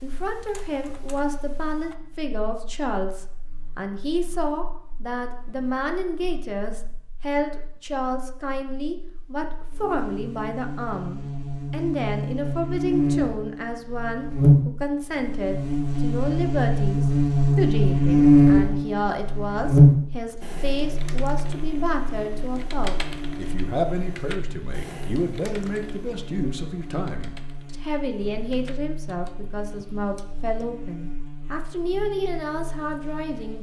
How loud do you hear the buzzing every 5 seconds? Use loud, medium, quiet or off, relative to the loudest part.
quiet, quiet, medium, loud, quiet, quiet, quiet.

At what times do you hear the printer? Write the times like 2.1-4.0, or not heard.
not heard.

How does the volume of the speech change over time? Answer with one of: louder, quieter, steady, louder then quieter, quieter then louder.
steady.